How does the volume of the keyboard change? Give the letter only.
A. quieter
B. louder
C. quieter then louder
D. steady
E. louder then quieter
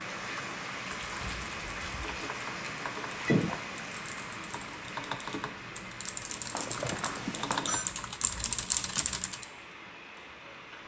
B.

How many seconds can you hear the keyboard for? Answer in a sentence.
You can hear the keyboard for 9 seconds altogether.